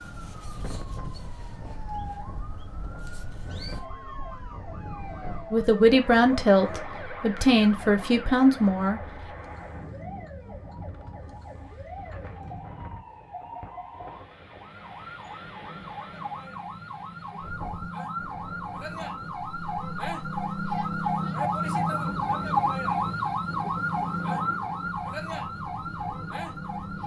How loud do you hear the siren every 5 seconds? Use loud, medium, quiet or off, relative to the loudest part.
quiet, quiet, quiet, medium, loud, medium.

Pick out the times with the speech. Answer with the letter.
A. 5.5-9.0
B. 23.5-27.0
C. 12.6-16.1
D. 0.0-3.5
A.